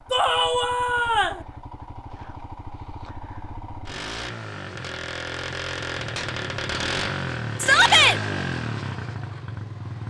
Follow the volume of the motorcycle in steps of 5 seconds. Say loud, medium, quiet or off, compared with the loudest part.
medium, loud.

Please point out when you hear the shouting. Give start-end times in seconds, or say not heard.
0.1-1.4, 7.6-8.2.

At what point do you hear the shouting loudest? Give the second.
8 s.